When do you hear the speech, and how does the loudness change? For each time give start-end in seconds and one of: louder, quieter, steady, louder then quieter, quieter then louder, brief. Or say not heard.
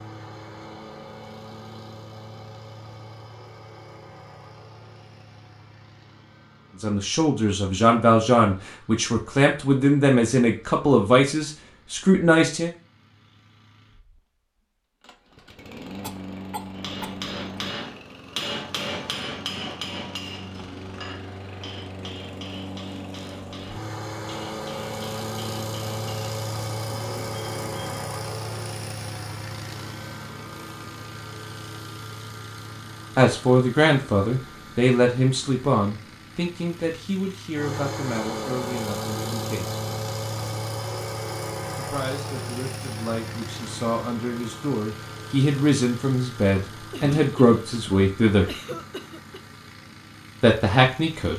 6.8-12.7 steady
33.1-39.8 quieter
41.8-48.5 louder
50.4-51.3 brief.